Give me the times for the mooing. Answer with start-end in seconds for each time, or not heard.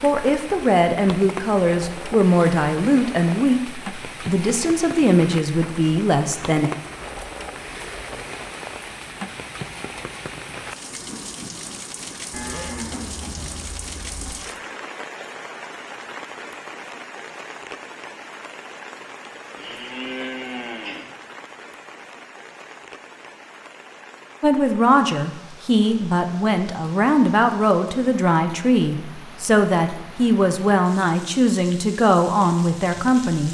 12.3-14.3, 19.6-21.1.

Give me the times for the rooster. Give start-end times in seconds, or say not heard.
not heard.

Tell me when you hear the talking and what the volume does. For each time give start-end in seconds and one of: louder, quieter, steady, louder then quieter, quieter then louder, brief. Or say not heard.
0.0-6.7 steady
24.4-33.5 steady.